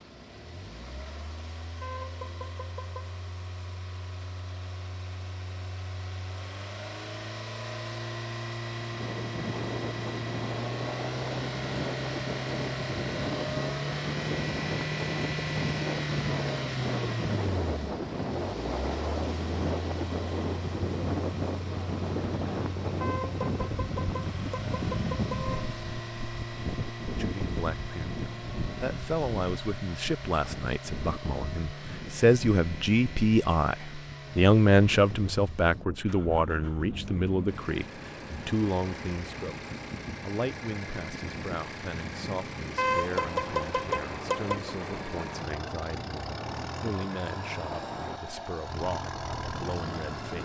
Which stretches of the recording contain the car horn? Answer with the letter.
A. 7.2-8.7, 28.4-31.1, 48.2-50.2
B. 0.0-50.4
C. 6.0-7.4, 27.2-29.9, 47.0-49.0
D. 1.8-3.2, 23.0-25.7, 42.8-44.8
D.